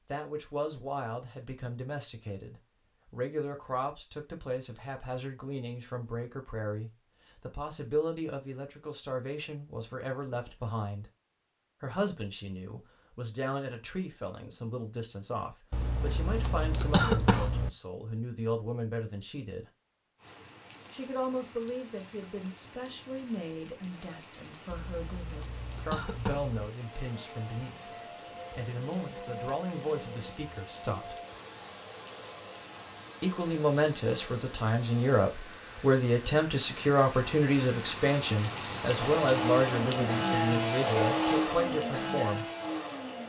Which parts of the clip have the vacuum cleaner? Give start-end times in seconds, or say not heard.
26.7-43.2.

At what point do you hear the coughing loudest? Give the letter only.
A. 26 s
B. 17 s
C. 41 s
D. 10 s
B.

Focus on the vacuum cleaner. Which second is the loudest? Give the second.
41 s.